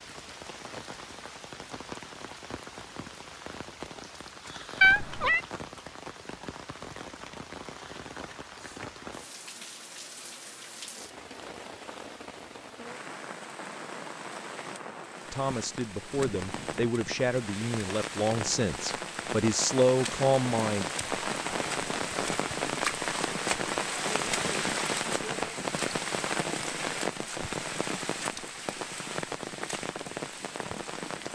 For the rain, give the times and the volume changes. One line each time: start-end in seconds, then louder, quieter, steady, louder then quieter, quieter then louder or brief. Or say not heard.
0.0-31.3 louder.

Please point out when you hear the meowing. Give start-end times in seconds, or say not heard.
4.8-5.4.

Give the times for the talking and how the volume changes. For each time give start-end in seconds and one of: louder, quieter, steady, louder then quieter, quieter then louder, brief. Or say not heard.
15.3-20.9 louder.